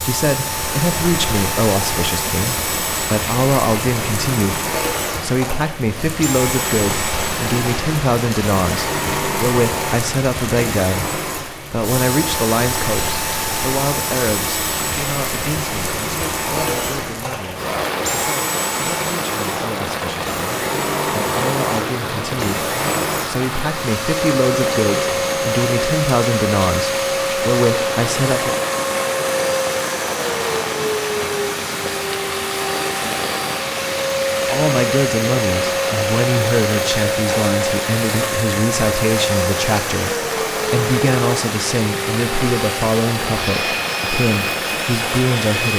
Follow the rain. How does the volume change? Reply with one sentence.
The volume of the rain stays about the same.